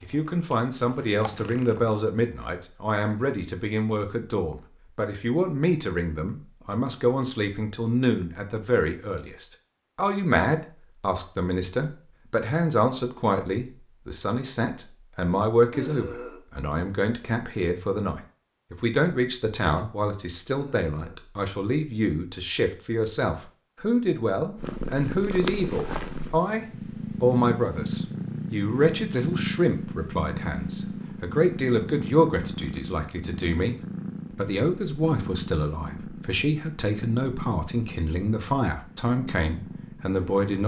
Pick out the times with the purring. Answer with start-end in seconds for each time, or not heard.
0.0-2.0, 24.6-40.5.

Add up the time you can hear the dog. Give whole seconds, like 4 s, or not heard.
not heard.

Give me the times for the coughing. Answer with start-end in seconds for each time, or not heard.
15.7-16.4, 20.8-21.2.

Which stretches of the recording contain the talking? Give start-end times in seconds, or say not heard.
0.0-40.6.